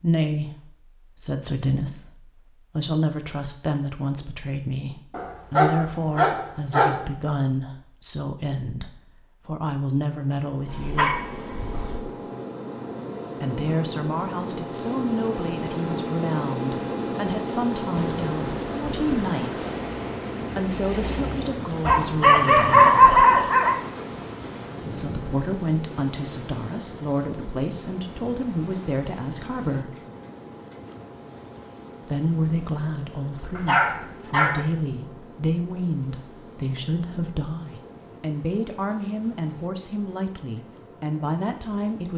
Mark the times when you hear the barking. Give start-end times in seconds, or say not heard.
5.1-7.0, 10.7-11.9, 21.8-23.8, 33.5-34.6.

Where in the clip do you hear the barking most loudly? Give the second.
23 s.